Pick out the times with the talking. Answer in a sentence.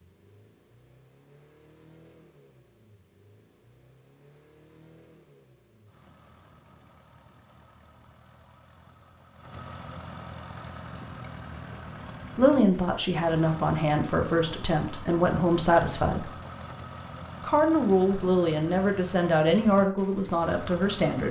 You can hear the talking from 12.3 to 16.3 s and from 17.4 to 21.2 s.